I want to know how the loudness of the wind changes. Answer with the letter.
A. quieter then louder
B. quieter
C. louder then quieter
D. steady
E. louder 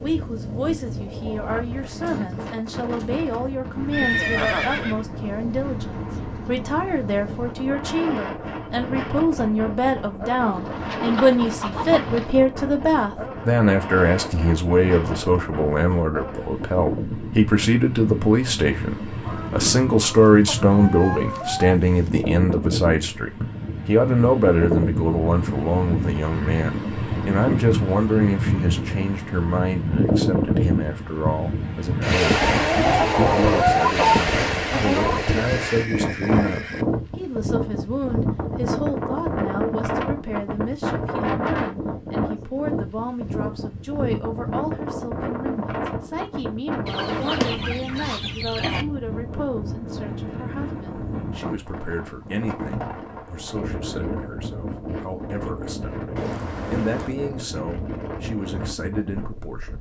C.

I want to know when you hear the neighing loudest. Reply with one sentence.
The volume of the neighing peaks at 4 seconds.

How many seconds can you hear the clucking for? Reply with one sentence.
The clucking can be heard for 10 seconds in total.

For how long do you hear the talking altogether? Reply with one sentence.
You can hear the talking for 60 seconds altogether.